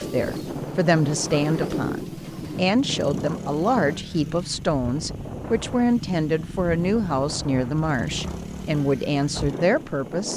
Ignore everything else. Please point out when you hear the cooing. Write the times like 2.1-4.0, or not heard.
0.0-2.6.